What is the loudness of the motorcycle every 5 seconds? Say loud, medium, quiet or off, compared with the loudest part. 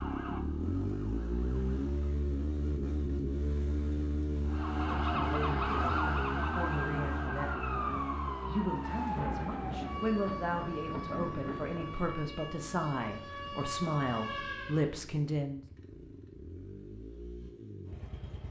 loud, loud, quiet, quiet.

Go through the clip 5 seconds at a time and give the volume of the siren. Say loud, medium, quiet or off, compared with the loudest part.
medium, loud, medium, off.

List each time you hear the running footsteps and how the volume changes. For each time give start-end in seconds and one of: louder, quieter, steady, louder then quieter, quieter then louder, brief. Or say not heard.
not heard.